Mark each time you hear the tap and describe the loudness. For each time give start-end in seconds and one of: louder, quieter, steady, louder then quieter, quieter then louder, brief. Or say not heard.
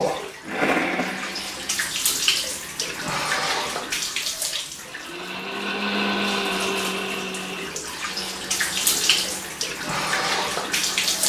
0.0-11.2 quieter then louder.